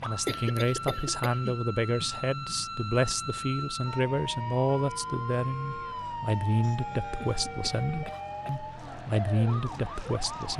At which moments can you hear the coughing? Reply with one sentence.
The coughing can be heard from 0.2 to 1.6 s and from 7.2 to 8.6 s.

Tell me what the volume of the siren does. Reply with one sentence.
The volume of the siren stays about the same.